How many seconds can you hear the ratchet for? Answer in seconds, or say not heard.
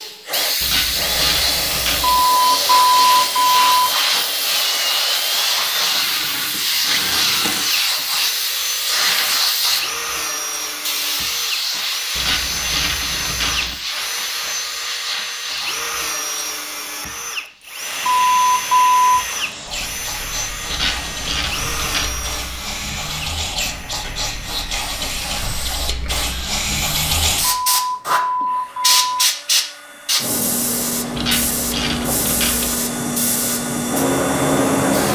6 s.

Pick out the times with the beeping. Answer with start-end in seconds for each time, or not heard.
2.1-4.0, 18.1-19.2, 27.4-29.3.